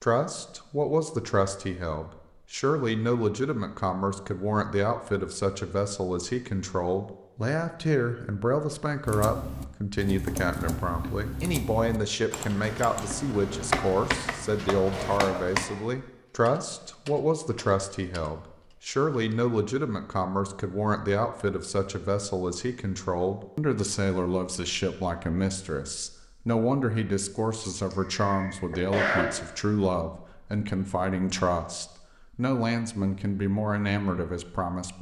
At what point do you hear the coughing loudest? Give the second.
29 s.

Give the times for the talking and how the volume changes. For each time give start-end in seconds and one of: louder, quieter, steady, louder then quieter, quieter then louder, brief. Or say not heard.
0.0-34.9 steady.